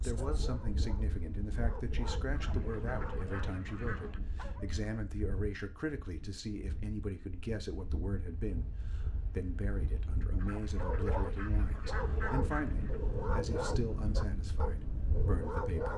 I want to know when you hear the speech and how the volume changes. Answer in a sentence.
You can hear the speech from 0.0 to 15.9 s, at a steady volume.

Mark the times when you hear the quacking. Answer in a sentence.
The quacking can be heard from 2.3 to 4.2 s and from 10.3 to 13.0 s.